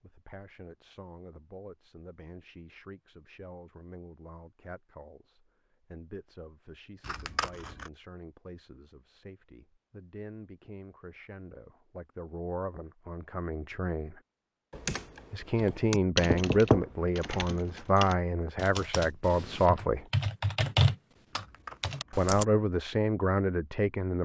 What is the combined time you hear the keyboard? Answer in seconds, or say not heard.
8 s.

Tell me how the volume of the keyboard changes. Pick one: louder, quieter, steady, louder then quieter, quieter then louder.
quieter then louder.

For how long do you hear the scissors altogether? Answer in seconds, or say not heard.
2 s.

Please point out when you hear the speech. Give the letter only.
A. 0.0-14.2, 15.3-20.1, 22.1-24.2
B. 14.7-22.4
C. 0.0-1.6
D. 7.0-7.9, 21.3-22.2
A.